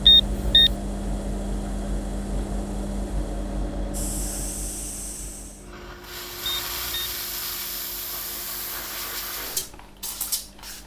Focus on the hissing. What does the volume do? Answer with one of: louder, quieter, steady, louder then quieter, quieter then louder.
louder.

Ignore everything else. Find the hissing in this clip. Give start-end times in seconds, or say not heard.
3.9-10.8.